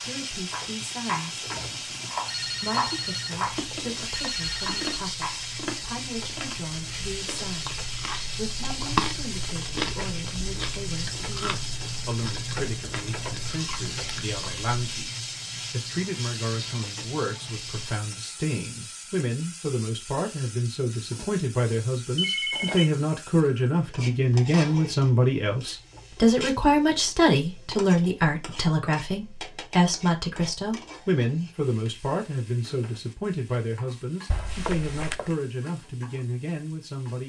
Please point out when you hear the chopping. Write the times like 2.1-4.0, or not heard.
0.0-5.5.